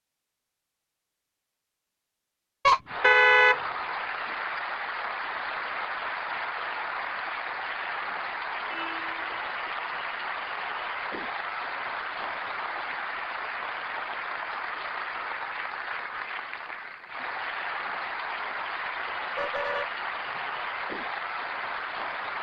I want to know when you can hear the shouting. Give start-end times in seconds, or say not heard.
not heard.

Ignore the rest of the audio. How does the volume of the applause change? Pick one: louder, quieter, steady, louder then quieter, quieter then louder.
steady.